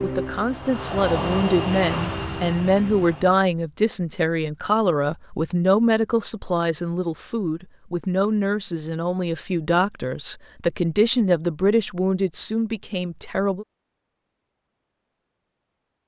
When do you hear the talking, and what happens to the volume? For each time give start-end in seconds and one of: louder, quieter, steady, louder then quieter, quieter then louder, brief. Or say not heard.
0.0-13.7 steady.